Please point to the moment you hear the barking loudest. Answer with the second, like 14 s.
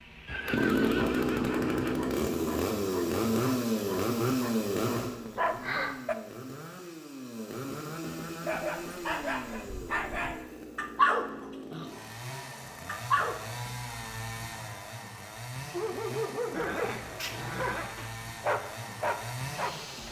11 s.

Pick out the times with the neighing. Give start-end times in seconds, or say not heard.
0.2-2.0, 16.5-18.0.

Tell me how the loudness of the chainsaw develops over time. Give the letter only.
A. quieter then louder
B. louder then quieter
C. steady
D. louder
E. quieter
E.